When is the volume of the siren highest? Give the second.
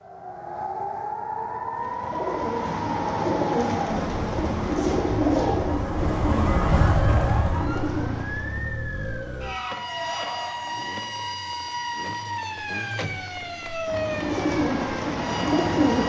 7 s.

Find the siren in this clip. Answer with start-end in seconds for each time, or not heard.
0.0-16.0.